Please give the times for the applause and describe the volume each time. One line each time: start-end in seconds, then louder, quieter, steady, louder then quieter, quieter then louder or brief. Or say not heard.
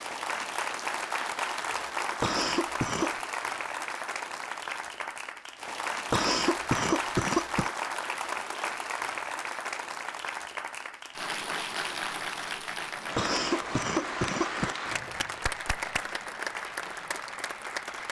0.0-18.0 steady.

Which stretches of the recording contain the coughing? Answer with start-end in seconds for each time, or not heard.
2.2-3.1, 6.1-7.7, 13.2-14.8.